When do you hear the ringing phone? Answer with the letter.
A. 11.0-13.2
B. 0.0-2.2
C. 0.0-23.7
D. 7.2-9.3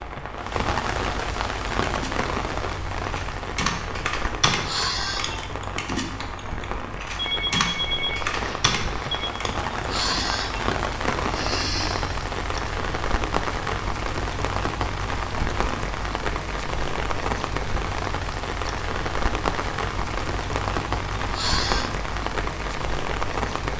D.